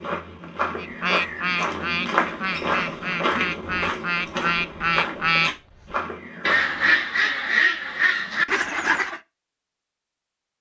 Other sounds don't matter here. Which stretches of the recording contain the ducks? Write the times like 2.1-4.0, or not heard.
0.8-9.2.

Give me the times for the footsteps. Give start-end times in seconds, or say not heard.
0.0-7.0.